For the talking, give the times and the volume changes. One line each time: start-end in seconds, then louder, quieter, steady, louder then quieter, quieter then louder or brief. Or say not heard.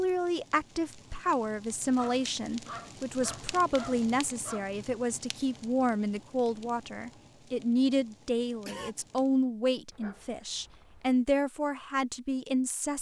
0.0-12.9 steady.